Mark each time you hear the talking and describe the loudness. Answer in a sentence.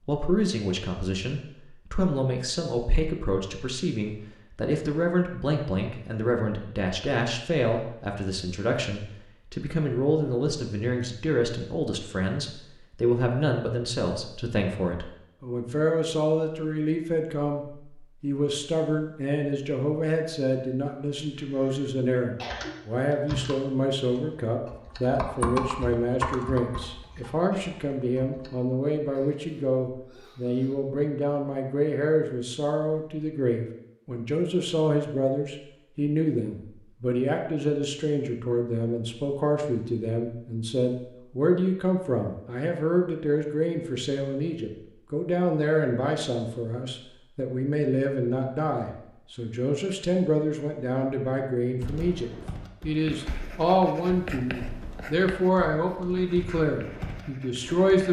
You can hear the talking from 0.1 to 58.0 s, at a steady volume.